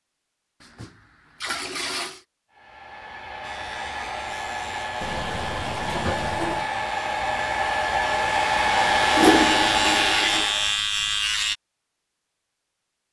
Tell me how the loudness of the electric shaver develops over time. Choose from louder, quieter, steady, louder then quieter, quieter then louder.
louder.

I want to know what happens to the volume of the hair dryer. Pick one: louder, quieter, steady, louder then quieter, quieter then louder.
louder.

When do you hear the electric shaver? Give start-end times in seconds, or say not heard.
3.4-11.6.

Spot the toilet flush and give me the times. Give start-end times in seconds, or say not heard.
0.6-2.2, 5.0-6.7, 9.1-10.5.